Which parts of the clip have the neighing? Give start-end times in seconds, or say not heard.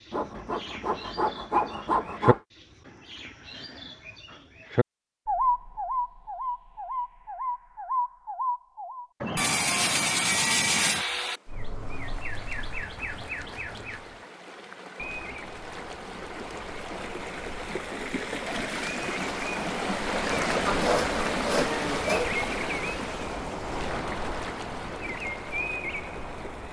not heard.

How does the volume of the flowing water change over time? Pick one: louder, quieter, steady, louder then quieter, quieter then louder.
louder then quieter.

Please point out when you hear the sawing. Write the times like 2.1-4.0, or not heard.
0.1-2.4, 9.3-11.4, 20.6-22.3.